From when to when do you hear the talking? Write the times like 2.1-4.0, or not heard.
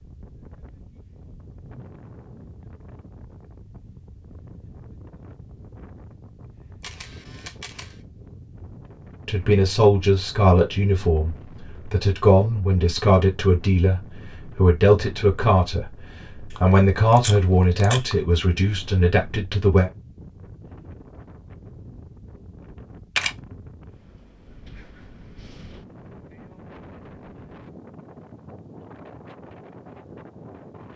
9.2-19.9.